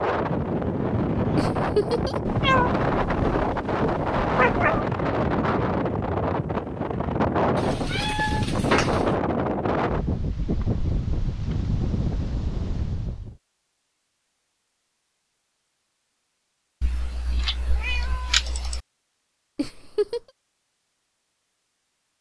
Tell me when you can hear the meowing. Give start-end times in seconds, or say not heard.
2.2-4.8, 7.5-9.2, 16.8-18.8.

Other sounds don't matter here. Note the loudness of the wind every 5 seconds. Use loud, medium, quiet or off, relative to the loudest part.
loud, loud, medium, off, off.